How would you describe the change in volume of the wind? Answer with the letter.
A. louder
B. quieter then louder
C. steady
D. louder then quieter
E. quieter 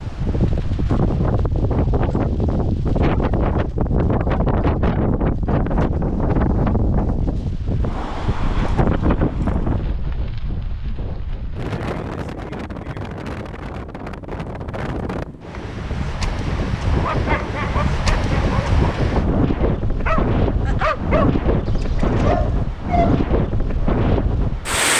B.